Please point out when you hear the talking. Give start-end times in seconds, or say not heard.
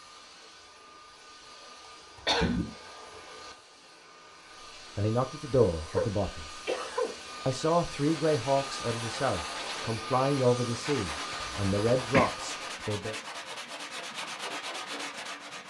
5.0-6.5, 7.5-13.2.